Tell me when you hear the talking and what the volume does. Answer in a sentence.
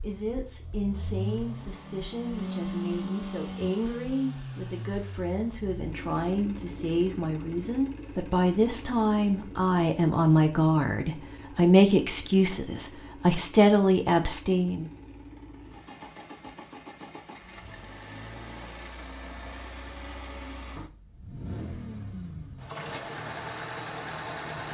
You can hear the talking from 0.0 to 14.8 s, getting louder.